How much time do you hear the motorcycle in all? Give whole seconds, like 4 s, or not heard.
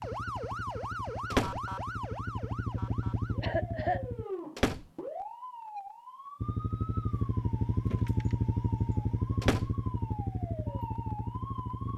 10 s.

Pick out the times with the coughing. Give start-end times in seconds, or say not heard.
3.4-4.0.